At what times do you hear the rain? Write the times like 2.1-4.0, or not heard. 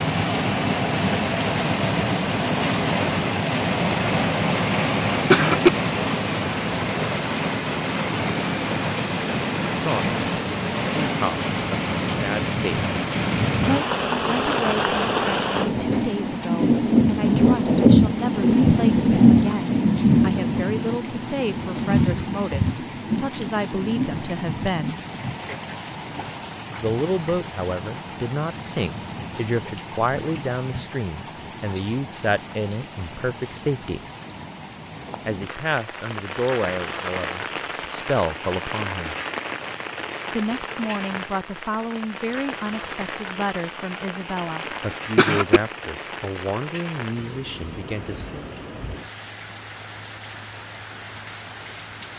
0.0-52.1.